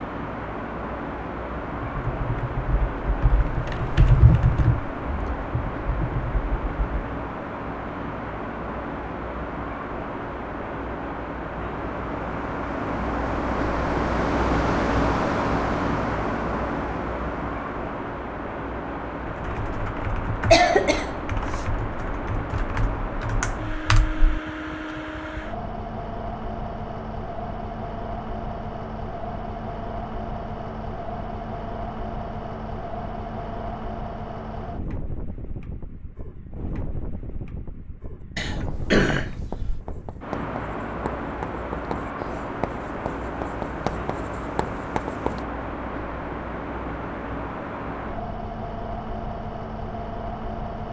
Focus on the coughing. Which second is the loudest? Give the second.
21 s.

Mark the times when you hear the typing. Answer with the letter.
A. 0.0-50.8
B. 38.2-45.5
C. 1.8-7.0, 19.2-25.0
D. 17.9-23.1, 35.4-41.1
C.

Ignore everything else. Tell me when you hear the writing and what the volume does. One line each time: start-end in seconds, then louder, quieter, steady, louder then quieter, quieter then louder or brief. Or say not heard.
38.2-45.5 louder.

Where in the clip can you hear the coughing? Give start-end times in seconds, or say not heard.
20.5-21.6, 38.4-39.8.